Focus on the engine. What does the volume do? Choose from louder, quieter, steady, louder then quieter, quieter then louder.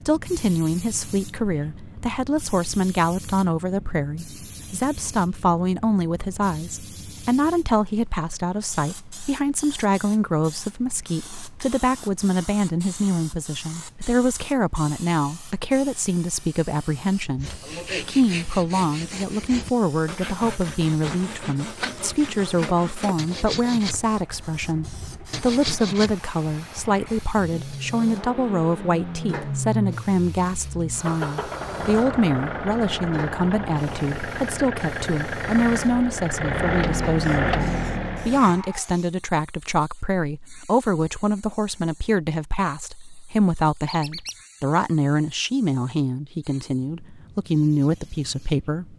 louder.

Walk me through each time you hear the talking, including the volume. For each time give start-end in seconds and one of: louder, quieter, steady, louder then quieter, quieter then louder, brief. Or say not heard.
0.1-48.9 steady.